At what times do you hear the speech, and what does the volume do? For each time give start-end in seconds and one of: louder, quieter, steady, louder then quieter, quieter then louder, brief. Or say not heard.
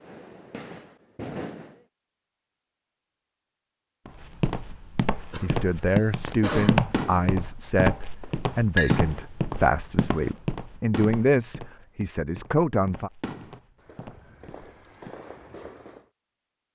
5.4-13.1 steady.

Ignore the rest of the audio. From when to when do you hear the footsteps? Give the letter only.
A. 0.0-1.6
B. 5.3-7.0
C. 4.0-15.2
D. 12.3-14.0
C.